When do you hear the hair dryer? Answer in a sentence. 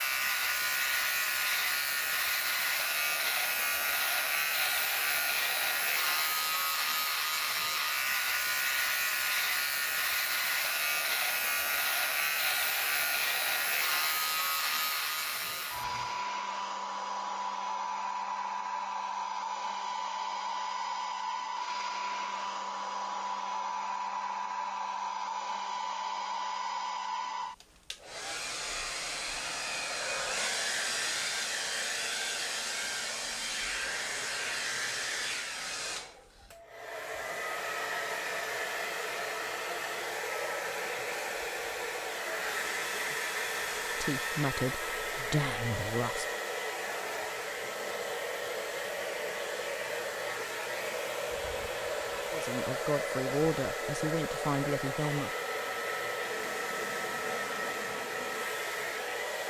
The hair dryer can be heard from 0.0 to 59.4 s.